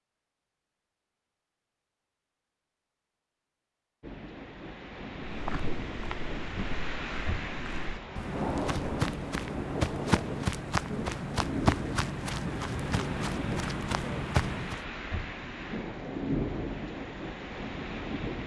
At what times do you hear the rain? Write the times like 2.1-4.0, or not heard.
4.0-18.4.